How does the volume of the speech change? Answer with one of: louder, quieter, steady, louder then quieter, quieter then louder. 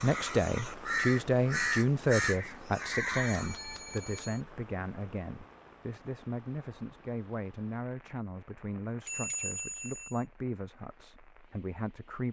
quieter.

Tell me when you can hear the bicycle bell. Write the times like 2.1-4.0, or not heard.
3.1-4.4, 9.1-10.2.